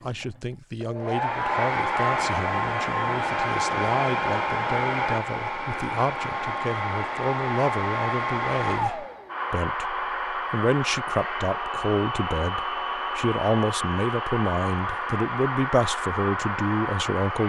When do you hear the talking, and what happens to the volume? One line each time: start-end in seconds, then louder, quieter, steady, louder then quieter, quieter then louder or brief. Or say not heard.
0.0-17.4 louder.